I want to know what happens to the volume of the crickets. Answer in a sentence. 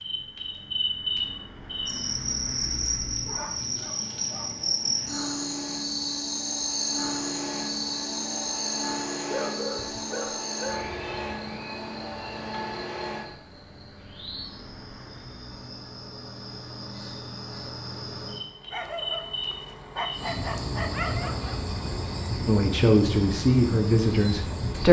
The volume of the crickets goes down, then up.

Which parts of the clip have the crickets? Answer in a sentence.
You can hear the crickets from 0.0 to 24.8 s.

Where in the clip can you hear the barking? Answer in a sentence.
The barking can be heard from 3.2 to 4.5 s, from 9.2 to 10.9 s and from 18.7 to 21.6 s.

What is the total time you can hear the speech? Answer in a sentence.
The speech can be heard for 2 seconds in total.